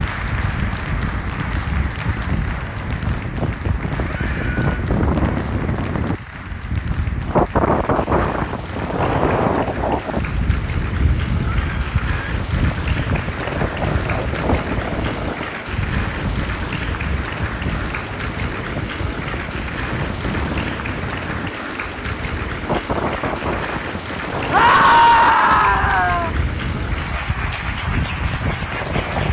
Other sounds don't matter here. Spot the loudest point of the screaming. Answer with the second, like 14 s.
25 s.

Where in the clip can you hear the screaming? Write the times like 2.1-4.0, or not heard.
4.0-4.9, 11.6-12.1, 24.5-26.3.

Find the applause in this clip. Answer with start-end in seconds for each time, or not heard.
0.0-29.2.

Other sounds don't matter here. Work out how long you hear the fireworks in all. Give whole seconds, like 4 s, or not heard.
not heard.